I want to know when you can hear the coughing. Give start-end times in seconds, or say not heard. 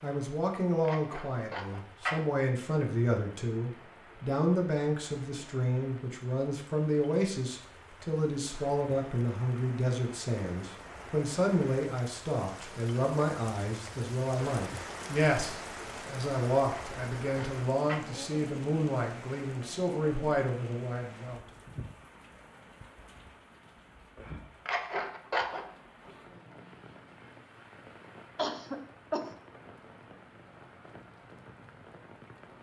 28.4-29.3.